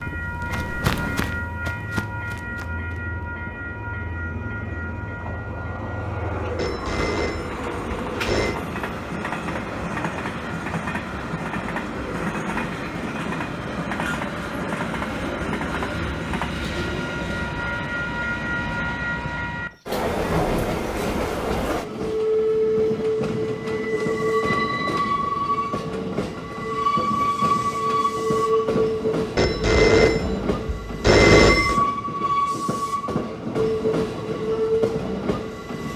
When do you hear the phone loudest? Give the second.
31 s.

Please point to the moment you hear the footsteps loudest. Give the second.
1 s.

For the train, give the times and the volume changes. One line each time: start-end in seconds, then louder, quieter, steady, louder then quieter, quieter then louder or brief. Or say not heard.
0.0-35.9 louder.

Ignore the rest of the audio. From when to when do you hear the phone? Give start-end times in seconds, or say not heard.
6.5-8.6, 29.4-31.8.